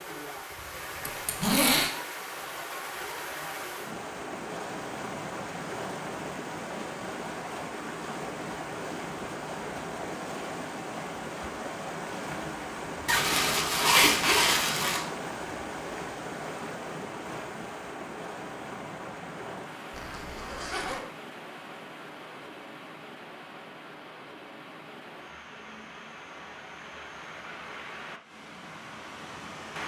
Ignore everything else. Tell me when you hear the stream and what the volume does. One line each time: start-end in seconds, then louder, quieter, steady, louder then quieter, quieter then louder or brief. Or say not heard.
0.0-29.8 quieter.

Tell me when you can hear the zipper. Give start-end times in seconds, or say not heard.
1.1-1.9, 13.1-15.1, 19.9-21.1.